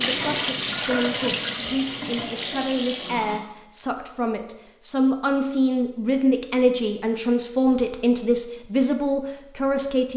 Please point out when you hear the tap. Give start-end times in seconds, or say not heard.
0.0-3.4.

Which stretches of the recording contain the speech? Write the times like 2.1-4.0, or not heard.
0.0-10.1.